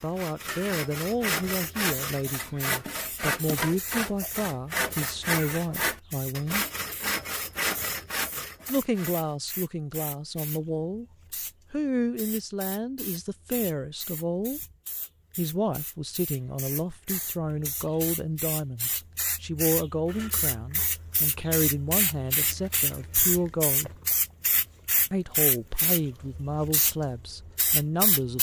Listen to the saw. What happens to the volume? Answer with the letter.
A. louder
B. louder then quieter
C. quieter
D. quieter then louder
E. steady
E.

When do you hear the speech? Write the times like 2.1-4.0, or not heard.
0.0-6.7, 8.7-11.1, 11.7-14.6, 15.3-23.9, 25.1-28.3.